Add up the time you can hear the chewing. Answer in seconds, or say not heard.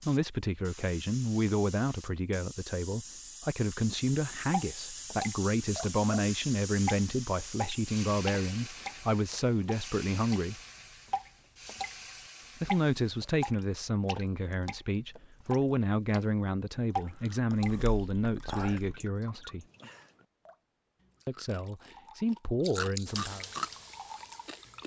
6 s.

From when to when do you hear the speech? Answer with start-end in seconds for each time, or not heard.
0.0-10.6, 12.6-19.6, 21.2-23.4.